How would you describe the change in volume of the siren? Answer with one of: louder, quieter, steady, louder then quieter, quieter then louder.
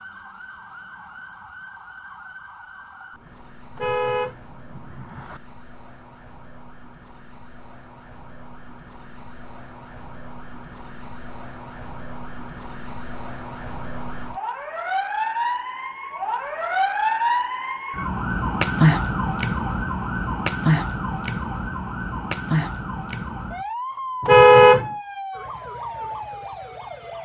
louder then quieter.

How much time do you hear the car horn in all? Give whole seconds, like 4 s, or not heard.
2 s.